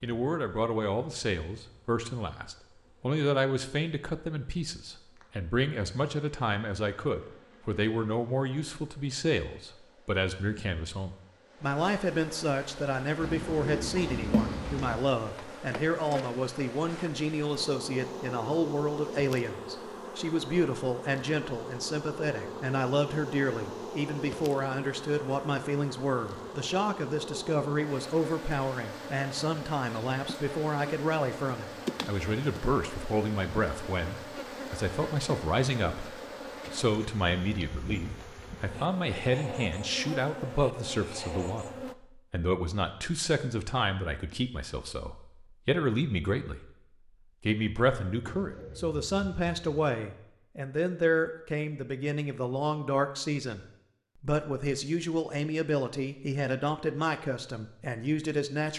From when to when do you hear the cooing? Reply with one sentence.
The cooing can be heard from 13.2 to 15.1 s and from 48.2 to 49.8 s.